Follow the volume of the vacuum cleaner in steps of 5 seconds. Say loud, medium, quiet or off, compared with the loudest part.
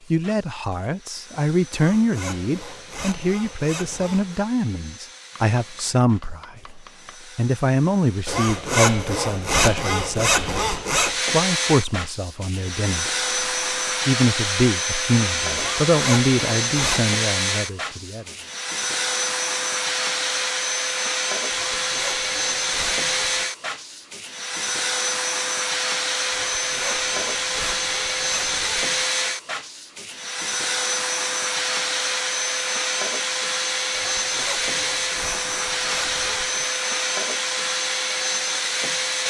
quiet, quiet, loud, loud, loud, loud, loud, loud.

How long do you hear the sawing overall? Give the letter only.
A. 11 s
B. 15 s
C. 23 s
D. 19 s
B.